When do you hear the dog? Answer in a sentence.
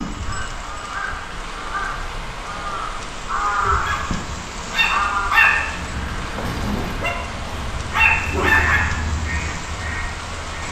You can hear the dog from 3.5 to 8.8 s.